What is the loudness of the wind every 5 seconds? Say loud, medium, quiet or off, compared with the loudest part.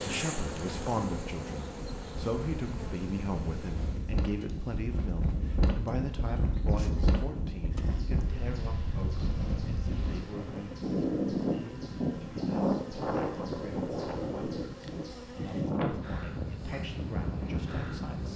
medium, loud, loud, loud.